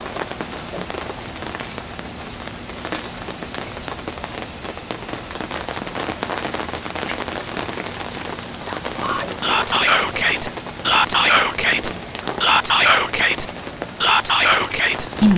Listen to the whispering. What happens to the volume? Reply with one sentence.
The loudness of the whispering stays about the same.